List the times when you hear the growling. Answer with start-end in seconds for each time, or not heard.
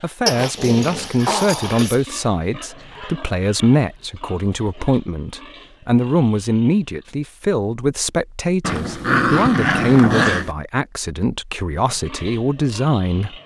0.2-2.0, 8.6-10.5.